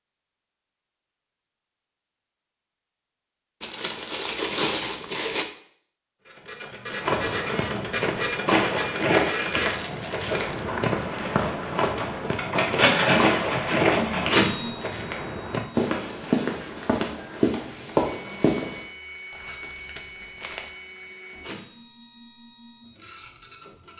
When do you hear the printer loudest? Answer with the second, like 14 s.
13 s.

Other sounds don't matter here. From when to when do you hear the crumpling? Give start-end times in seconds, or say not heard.
3.6-5.5, 9.4-10.7, 19.3-20.7.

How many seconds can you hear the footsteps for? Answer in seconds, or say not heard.
12 s.